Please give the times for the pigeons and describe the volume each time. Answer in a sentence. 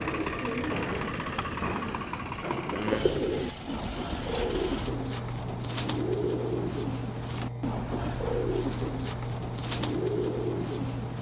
The pigeons can be heard from 0.0 to 11.1 s, at a steady volume.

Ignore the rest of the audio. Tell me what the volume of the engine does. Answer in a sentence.
The volume of the engine stays about the same.